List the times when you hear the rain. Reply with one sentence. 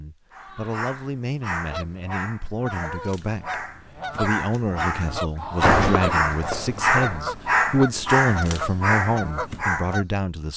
You can't hear the rain here.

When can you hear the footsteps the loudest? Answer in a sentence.
The loudest moment of the footsteps is at 6 seconds.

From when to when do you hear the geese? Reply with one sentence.
You can hear the geese from 1.6 to 10.1 s.